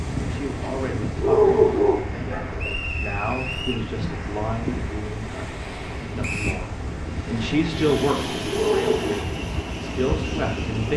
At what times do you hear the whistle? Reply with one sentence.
The whistle can be heard from 2.5 to 3.9 s and from 6.2 to 6.7 s.